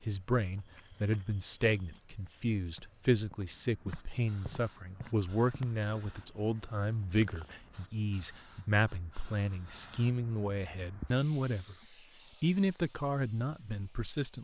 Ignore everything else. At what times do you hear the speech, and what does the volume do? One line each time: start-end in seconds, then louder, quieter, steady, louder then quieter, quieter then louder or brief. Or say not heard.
0.0-11.8 steady
12.4-14.3 brief.